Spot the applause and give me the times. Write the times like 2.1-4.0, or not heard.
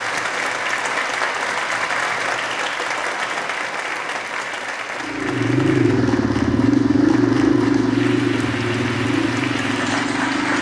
0.0-10.5.